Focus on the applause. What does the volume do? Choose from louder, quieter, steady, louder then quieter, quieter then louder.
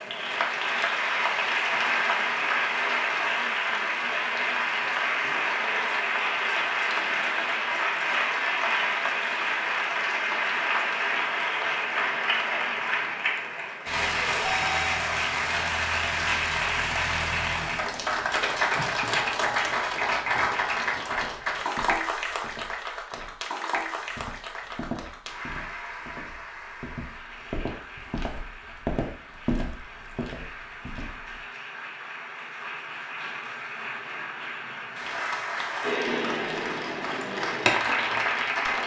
quieter then louder.